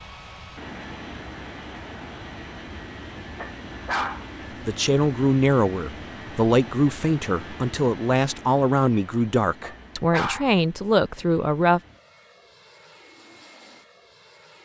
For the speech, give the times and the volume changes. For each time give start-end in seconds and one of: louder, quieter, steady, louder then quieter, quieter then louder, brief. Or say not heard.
4.7-11.8 steady.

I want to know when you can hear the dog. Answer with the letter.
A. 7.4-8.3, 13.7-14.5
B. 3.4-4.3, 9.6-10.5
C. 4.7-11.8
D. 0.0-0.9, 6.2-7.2
B.